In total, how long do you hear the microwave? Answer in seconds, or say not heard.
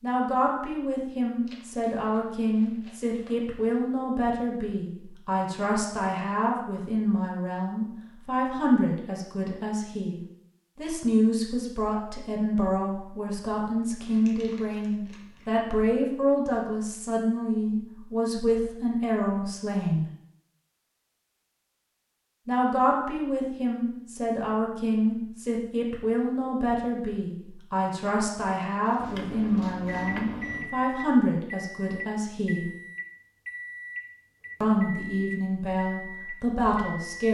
8 s.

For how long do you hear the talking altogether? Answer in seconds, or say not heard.
33 s.